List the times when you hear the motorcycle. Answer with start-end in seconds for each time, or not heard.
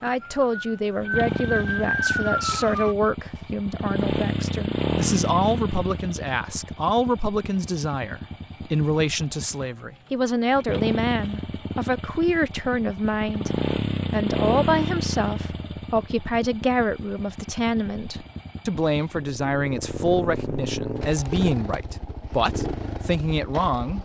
0.1-24.0.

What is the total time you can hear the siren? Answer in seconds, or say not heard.
3 s.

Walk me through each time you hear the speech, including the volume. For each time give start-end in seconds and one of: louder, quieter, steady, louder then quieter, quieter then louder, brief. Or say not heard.
0.0-24.0 steady.